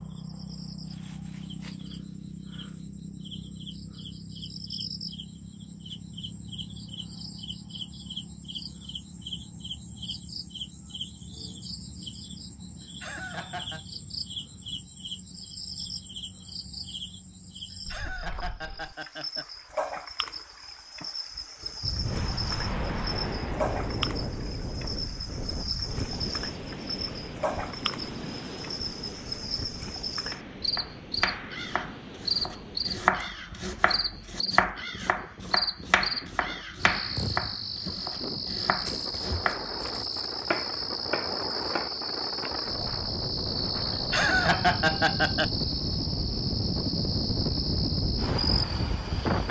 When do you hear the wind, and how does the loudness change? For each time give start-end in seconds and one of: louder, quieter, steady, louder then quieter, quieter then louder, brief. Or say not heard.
21.8-49.4 quieter then louder.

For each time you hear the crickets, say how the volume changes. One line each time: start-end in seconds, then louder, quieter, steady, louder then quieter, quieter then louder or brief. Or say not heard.
0.0-49.4 louder.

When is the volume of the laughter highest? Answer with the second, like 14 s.
45 s.